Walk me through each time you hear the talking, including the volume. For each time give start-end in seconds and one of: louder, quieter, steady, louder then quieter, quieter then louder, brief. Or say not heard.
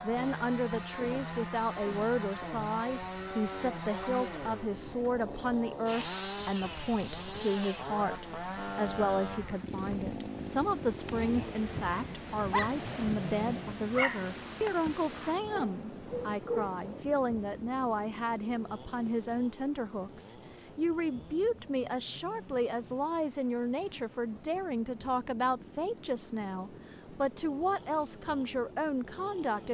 0.0-29.6 steady.